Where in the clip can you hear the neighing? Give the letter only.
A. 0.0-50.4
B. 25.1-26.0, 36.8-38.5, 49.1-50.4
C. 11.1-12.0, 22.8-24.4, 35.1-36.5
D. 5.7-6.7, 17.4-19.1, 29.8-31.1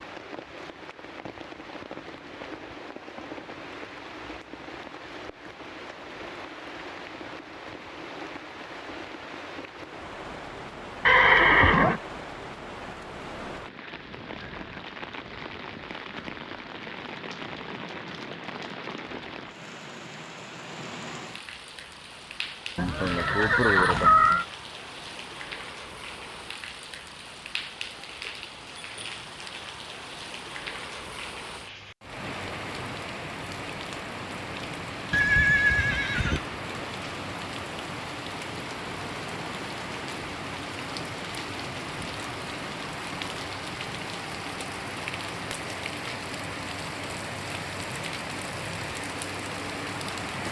C.